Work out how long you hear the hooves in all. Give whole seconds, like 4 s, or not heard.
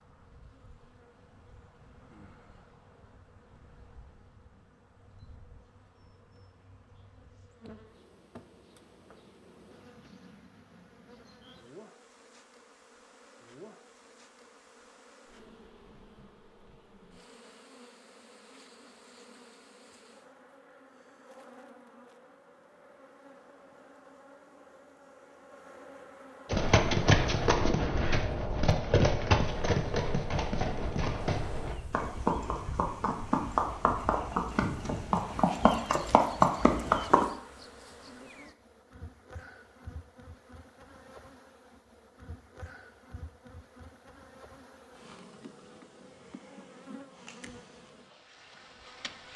11 s.